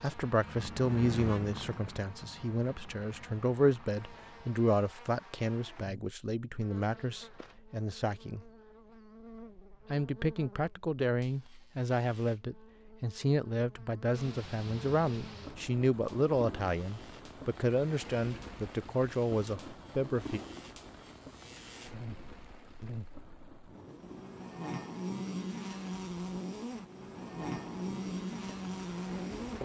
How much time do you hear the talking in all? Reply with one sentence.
The talking can be heard for 19 seconds in total.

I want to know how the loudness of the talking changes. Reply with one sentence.
The loudness of the talking stays about the same.